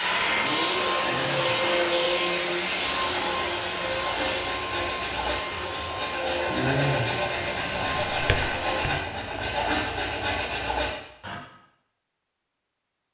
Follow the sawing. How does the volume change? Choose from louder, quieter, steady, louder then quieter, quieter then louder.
louder.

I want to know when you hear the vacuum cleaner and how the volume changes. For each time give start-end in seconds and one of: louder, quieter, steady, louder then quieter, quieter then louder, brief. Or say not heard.
0.0-9.0 quieter.